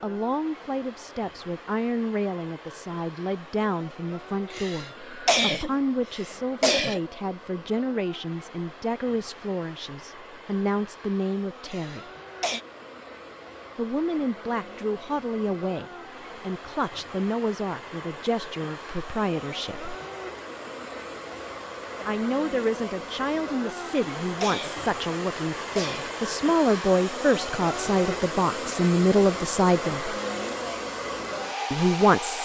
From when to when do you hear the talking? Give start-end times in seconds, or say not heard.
0.0-12.1, 13.8-19.9, 22.1-30.1, 31.7-32.4.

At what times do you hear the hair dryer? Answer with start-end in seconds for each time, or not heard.
0.0-32.4.